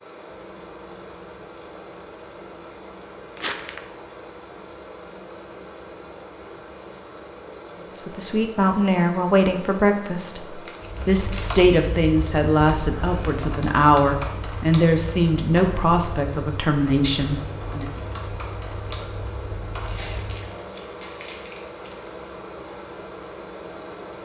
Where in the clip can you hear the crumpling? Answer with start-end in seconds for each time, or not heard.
3.4-3.8, 10.7-11.6, 19.8-22.2.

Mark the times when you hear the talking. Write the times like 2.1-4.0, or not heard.
7.8-17.9.